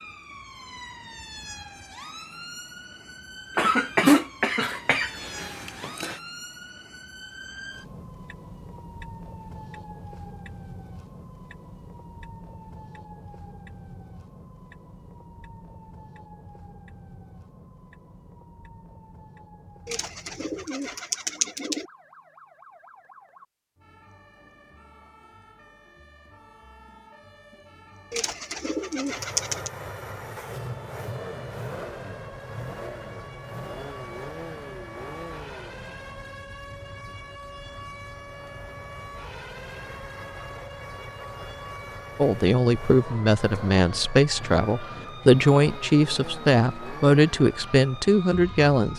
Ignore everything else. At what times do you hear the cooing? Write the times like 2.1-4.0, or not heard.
19.9-21.9, 28.1-29.7.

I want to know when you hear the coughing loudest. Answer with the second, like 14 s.
4 s.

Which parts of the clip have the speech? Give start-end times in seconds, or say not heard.
42.1-48.9.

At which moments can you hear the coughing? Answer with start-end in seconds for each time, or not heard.
3.5-6.2.